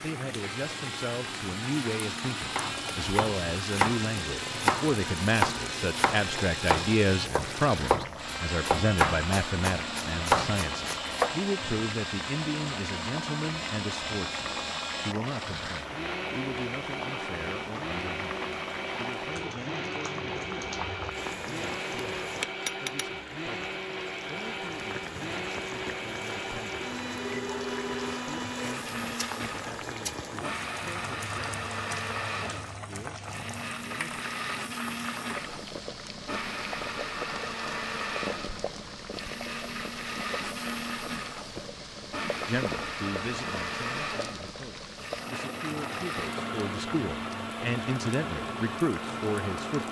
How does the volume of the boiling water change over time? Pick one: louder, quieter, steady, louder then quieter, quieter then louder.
steady.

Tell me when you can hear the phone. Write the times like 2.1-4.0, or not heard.
27.1-28.2.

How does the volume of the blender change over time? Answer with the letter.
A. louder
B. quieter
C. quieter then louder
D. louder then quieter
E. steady
E.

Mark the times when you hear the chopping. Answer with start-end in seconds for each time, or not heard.
2.5-11.3.